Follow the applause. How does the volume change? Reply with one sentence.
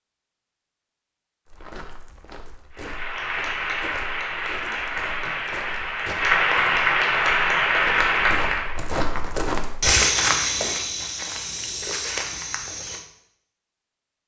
The volume of the applause goes up.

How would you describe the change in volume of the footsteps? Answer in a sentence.
The loudness of the footsteps goes up, then down.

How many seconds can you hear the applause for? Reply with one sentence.
The applause can be heard for 6 seconds in total.